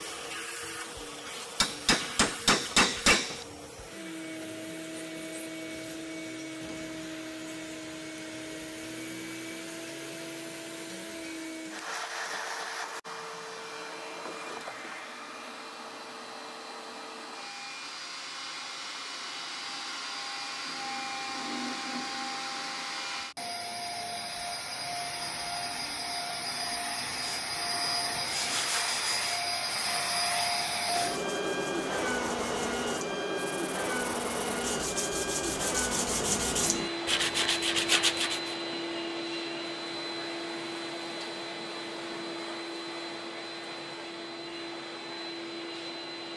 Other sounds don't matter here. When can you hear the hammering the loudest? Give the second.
3 s.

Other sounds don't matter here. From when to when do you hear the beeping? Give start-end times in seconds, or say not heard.
not heard.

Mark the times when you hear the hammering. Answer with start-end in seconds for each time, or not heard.
1.6-3.5.